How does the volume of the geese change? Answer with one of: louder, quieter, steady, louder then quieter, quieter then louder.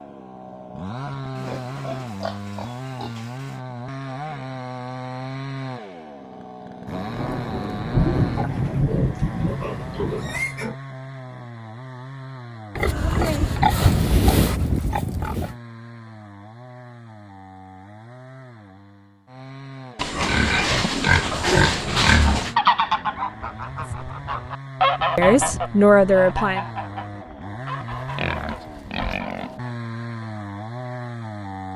louder then quieter.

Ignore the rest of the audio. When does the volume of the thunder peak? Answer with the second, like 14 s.
8 s.